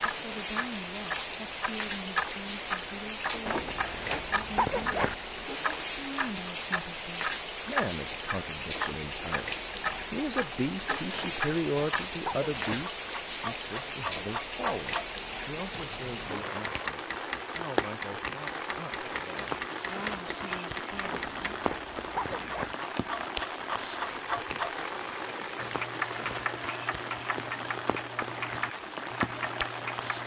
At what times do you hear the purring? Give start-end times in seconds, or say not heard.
not heard.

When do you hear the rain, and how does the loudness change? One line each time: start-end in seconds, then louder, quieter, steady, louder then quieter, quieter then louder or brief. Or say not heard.
0.0-30.2 steady.